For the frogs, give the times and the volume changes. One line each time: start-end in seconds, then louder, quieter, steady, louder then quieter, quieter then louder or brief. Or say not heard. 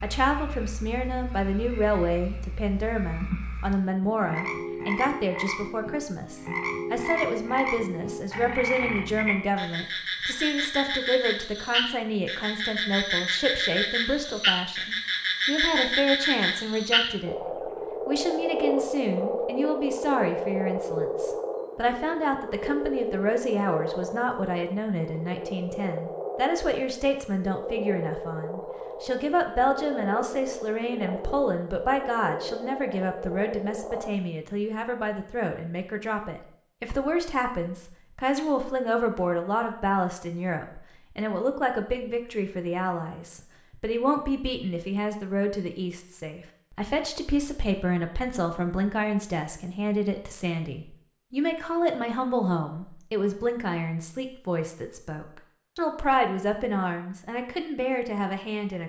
0.0-34.1 louder then quieter.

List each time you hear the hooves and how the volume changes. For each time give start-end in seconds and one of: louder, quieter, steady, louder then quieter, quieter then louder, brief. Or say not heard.
not heard.